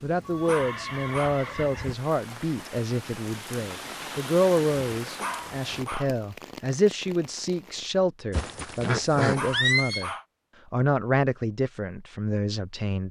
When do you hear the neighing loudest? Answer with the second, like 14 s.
10 s.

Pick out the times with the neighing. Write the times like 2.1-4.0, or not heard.
0.2-1.9, 8.3-10.1.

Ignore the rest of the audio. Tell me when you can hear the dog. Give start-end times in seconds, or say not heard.
0.5-1.4, 5.2-6.1, 9.3-10.2.